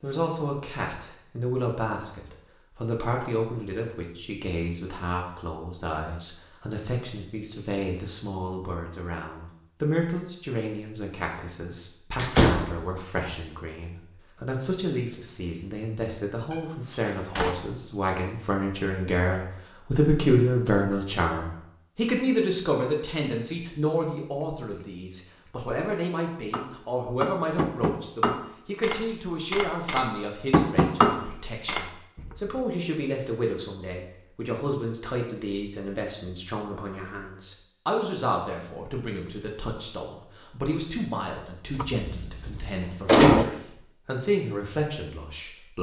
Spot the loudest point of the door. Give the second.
43 s.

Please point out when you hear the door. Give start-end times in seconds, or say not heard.
12.2-12.8, 16.5-17.6, 41.8-43.5.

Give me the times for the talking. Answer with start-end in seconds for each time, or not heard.
0.0-45.7.